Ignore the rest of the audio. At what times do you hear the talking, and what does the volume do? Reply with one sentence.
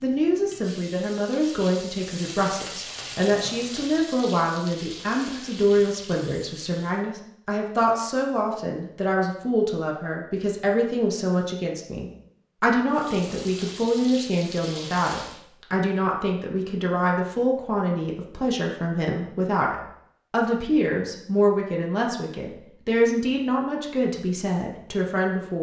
The talking can be heard from 0.0 to 25.5 s, at a steady volume.